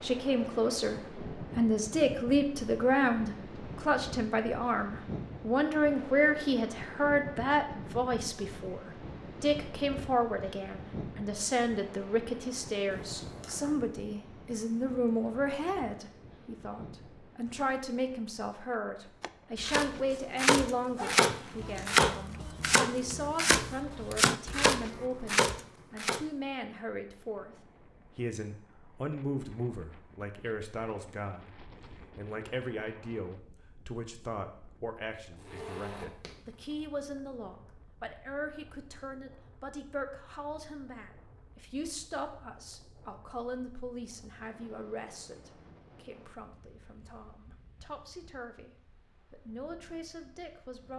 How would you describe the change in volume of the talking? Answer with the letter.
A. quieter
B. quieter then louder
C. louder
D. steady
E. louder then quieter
A.